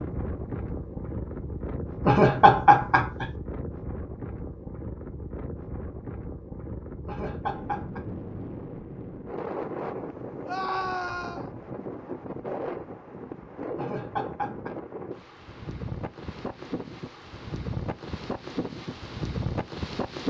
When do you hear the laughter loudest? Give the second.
3 s.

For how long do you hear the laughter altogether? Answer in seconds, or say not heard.
3 s.